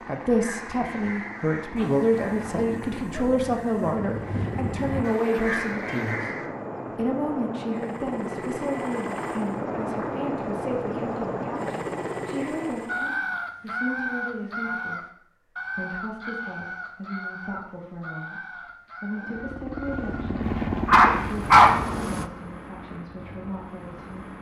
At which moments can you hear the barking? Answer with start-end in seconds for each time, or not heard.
1.8-4.0, 20.4-21.7.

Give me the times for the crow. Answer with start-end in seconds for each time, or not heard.
0.0-6.5, 12.8-20.2.